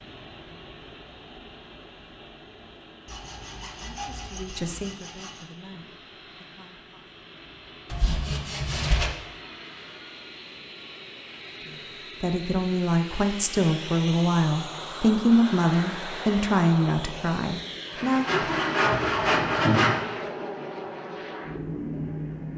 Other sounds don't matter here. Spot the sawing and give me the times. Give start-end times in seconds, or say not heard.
3.0-5.5, 7.8-9.1, 18.2-20.1.